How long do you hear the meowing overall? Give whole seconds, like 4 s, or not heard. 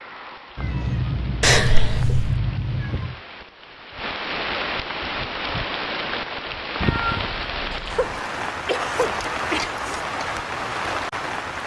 4 s.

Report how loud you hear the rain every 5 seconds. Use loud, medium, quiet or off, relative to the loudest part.
medium, loud, loud.